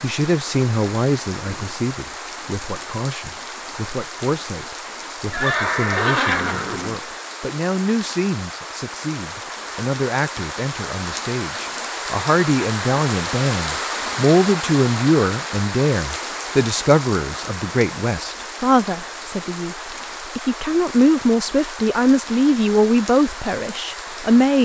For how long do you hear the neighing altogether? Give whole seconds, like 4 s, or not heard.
2 s.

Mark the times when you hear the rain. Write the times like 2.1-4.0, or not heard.
0.0-24.6.